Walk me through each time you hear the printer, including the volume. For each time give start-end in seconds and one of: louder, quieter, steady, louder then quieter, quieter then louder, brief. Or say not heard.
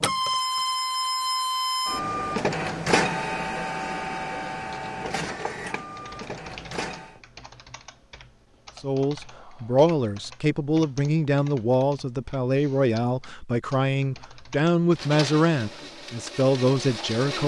0.0-7.2 quieter
14.9-17.4 brief.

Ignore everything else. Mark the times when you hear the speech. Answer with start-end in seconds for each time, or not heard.
8.8-17.4.